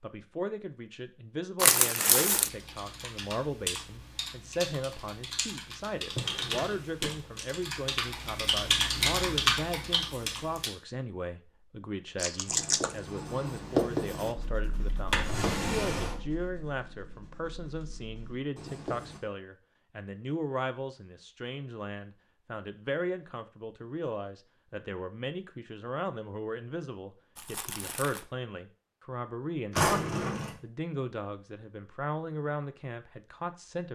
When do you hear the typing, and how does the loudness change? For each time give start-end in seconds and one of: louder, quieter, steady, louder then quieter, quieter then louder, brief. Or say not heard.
2.2-10.7 louder.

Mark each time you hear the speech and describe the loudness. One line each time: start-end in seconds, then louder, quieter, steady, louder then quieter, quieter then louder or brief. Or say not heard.
0.0-33.8 steady.